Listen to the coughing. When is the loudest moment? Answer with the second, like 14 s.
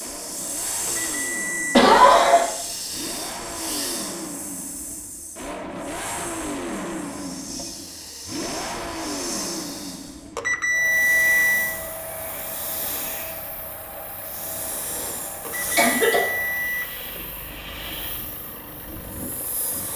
2 s.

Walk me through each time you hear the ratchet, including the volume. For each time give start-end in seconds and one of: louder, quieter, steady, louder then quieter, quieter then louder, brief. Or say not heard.
not heard.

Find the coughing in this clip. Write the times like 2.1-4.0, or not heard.
1.7-2.5, 15.8-16.2.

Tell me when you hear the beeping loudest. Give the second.
11 s.